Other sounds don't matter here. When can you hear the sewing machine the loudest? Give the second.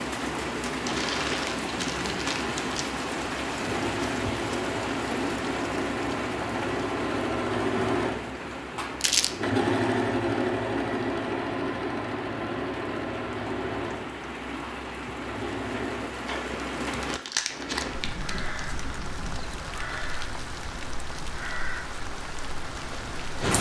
10 s.